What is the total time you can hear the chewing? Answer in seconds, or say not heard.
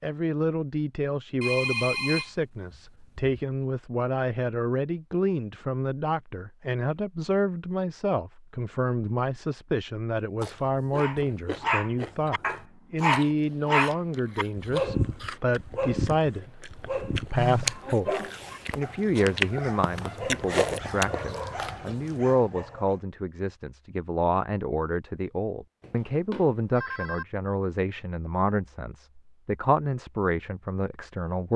12 s.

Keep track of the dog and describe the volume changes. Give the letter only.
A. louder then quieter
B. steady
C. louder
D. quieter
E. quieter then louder
D.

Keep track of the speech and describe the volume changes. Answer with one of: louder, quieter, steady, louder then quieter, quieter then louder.
steady.